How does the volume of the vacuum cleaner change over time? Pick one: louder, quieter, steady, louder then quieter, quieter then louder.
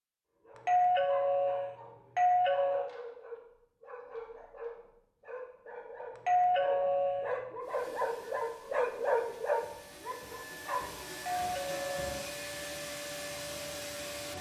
louder.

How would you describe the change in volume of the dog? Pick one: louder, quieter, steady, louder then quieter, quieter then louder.
louder.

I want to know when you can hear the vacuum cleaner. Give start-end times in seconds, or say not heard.
7.6-14.3.